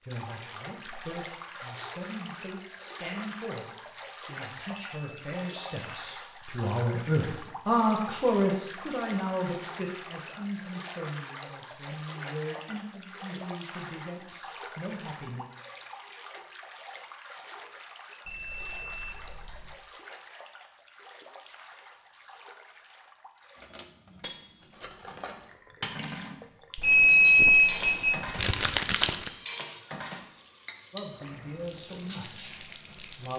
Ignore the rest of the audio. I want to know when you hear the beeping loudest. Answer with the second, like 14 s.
27 s.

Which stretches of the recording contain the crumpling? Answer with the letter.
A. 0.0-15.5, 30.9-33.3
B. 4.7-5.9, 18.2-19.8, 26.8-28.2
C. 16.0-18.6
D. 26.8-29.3
D.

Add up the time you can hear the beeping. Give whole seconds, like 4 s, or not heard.
4 s.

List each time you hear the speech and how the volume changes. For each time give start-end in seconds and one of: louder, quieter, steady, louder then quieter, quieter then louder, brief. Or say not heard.
0.0-15.5 louder then quieter
30.9-33.3 brief.